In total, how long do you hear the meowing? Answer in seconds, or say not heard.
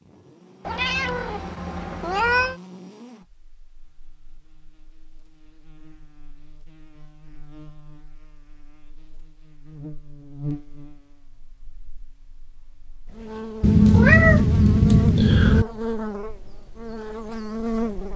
4 s.